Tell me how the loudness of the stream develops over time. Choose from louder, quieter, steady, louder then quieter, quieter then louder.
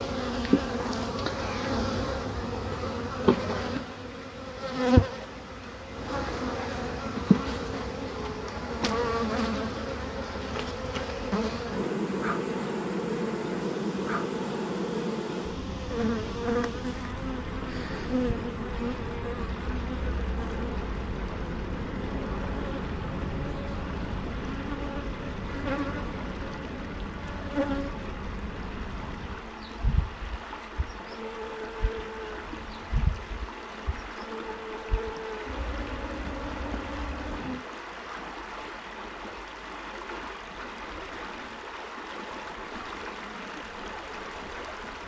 louder.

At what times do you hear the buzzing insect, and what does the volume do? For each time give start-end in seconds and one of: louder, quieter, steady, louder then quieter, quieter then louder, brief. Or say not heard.
0.0-37.6 quieter.